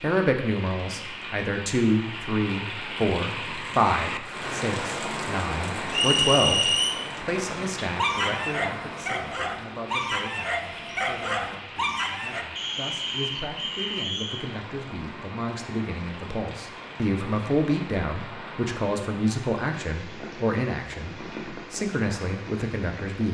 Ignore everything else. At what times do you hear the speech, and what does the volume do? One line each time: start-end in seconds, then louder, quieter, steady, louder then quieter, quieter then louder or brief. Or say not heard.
0.0-23.2 quieter then louder.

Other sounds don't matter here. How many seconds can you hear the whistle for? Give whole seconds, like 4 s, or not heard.
3 s.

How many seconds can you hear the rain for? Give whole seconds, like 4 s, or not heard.
23 s.